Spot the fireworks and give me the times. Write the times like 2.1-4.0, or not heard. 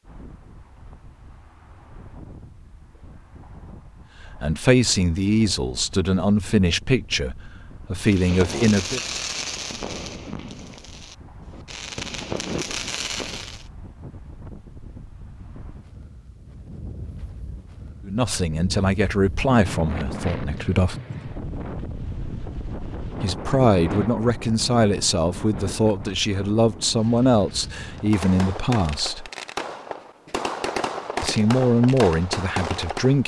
8.0-13.7, 27.8-33.2.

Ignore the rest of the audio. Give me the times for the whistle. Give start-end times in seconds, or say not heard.
not heard.